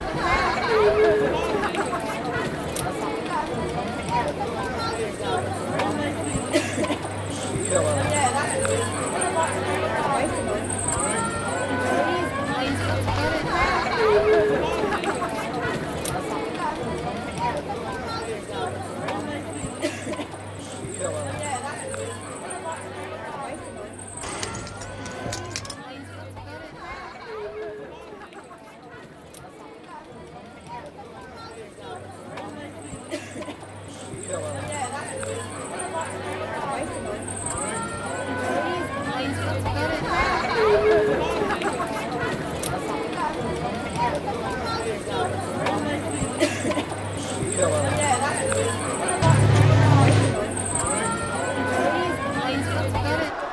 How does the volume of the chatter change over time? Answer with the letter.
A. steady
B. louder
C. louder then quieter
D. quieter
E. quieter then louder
E.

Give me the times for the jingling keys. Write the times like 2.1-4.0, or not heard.
12.7-13.4, 24.2-25.8, 49.2-50.4.